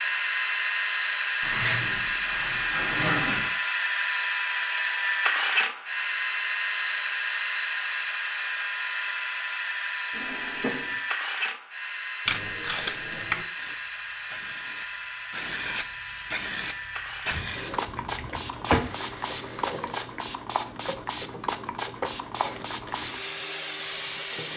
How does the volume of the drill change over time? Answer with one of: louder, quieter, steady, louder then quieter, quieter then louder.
quieter.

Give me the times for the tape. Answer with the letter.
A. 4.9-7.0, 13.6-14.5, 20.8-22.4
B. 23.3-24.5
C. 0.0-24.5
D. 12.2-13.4
D.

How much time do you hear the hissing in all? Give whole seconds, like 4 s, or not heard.
11 s.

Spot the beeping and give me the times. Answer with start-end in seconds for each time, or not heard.
not heard.